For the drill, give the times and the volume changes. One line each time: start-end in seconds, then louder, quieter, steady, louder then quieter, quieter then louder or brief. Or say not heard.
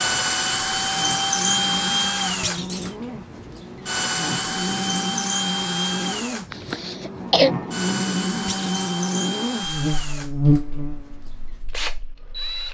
0.0-12.6 quieter.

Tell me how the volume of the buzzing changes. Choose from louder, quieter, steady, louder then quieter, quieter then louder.
louder.